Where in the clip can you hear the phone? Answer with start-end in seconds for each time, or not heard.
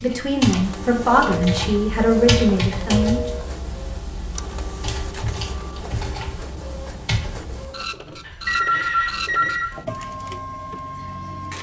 1.1-3.5, 8.2-9.7.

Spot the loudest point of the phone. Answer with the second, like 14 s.
9 s.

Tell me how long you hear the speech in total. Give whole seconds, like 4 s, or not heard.
3 s.